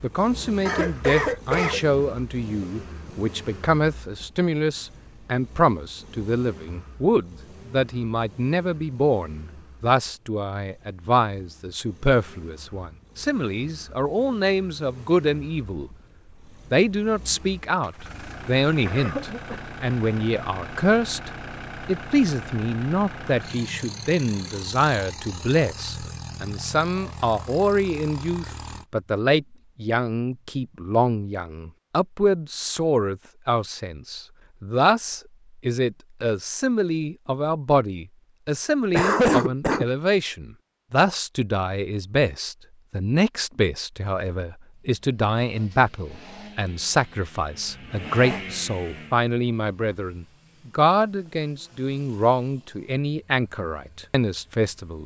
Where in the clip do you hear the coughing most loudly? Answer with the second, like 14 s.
39 s.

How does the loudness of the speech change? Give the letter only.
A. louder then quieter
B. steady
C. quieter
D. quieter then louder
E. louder
B.